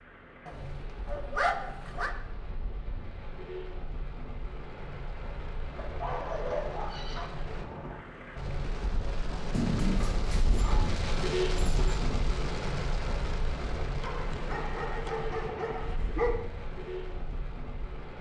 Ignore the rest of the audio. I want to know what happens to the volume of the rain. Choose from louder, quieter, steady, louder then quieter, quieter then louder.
louder then quieter.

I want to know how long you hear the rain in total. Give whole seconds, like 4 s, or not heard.
18 s.